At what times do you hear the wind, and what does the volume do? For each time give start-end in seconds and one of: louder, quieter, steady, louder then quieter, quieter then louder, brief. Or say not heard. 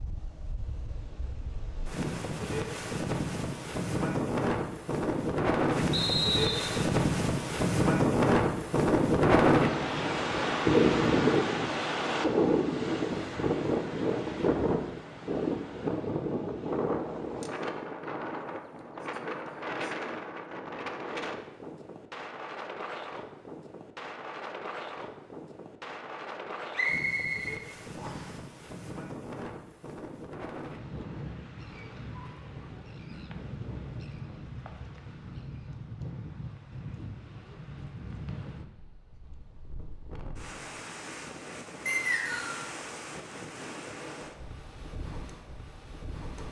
0.0-46.4 quieter.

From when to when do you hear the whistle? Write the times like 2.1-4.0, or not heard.
5.9-6.8, 26.7-28.3, 41.9-42.5.